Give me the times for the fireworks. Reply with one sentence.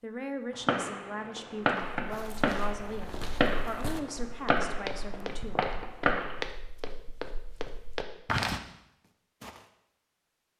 You can hear the fireworks from 0.6 to 6.5 s.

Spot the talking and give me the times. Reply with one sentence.
The talking can be heard from 0.0 to 5.7 s.